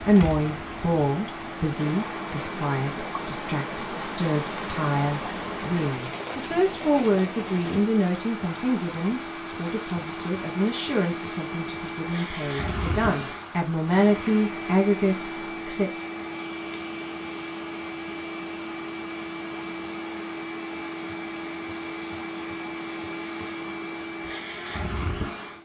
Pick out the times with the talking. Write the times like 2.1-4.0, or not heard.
0.0-15.9.